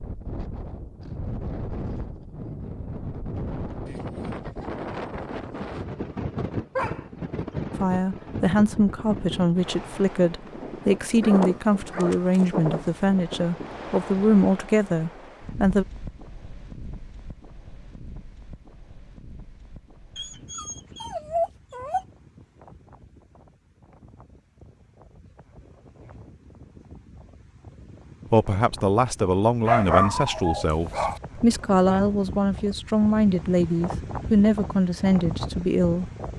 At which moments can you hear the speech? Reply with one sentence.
The speech can be heard from 7.8 to 15.8 s and from 28.3 to 36.1 s.